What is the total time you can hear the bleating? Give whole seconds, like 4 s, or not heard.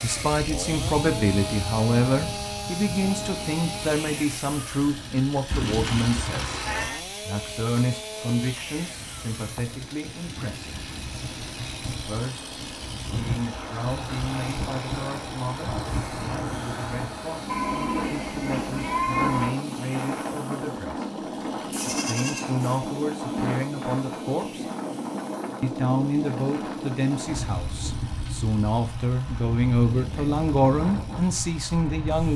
5 s.